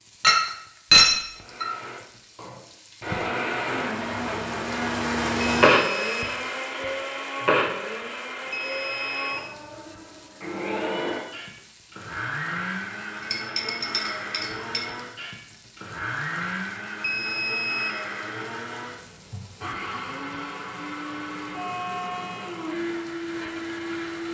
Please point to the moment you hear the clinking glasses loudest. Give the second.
1 s.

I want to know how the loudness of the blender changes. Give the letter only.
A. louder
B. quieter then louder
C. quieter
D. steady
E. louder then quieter
C.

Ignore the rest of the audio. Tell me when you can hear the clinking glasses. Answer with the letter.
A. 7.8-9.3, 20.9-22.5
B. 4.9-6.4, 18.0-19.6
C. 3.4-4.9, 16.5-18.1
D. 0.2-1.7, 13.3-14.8
D.